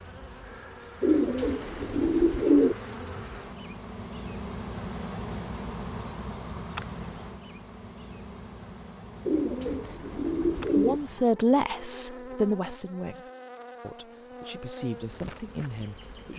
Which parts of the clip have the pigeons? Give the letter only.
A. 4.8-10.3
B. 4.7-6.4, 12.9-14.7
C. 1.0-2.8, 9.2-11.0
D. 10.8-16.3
C.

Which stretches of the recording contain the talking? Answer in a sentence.
The talking can be heard from 10.8 to 16.3 s.